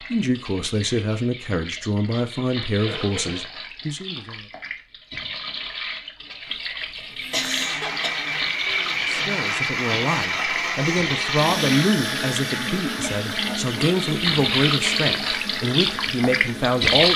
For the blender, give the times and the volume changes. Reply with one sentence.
You can hear the blender from 7.2 to 16.9 s, getting quieter.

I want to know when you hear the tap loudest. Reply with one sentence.
The loudest moment of the tap is at 17 seconds.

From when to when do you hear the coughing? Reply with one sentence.
You can hear the coughing from 2.9 to 3.5 s, from 7.3 to 8.2 s and from 12.8 to 13.7 s.